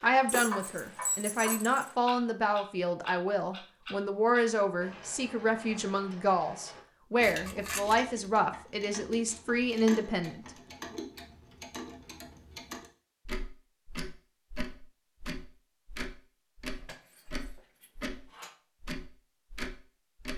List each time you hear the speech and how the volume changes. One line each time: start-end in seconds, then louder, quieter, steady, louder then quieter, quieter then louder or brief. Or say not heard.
0.0-10.9 steady.